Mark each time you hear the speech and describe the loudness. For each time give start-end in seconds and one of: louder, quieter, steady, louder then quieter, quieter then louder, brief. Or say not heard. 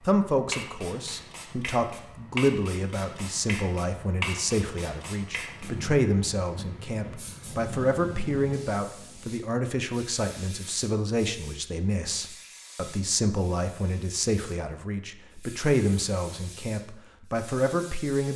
0.1-18.3 steady.